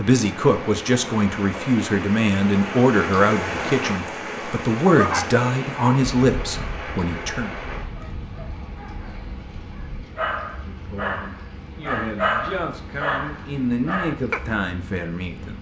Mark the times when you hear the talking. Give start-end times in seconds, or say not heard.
0.0-7.5, 10.7-15.5.